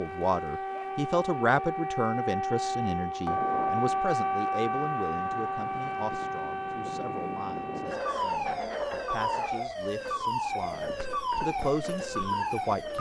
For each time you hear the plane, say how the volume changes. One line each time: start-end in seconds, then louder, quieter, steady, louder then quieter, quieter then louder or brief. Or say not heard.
not heard.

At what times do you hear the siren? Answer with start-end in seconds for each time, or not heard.
0.0-12.9.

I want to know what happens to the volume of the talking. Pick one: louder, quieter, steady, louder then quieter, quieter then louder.
quieter then louder.